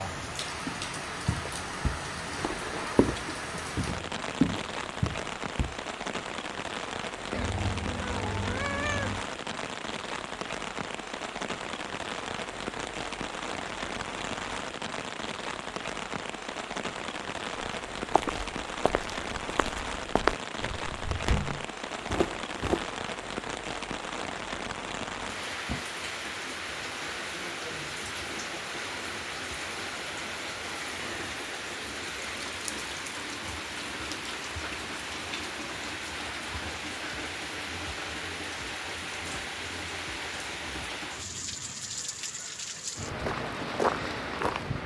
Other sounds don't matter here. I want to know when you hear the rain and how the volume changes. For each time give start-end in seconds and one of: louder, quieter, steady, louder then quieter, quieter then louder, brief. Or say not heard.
0.0-44.8 steady.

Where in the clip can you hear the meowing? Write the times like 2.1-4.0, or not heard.
7.3-9.2.